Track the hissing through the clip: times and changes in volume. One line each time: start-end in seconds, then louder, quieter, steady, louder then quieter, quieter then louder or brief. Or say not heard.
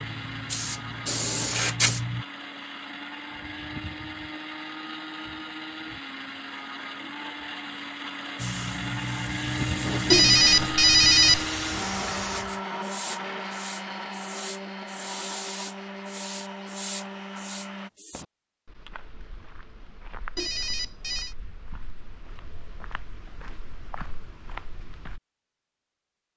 0.0-2.2 brief
8.3-18.2 quieter.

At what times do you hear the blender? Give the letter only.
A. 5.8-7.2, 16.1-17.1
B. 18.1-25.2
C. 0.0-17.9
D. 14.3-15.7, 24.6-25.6
C.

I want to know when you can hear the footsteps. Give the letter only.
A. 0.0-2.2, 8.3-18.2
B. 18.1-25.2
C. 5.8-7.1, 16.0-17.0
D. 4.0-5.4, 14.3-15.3
B.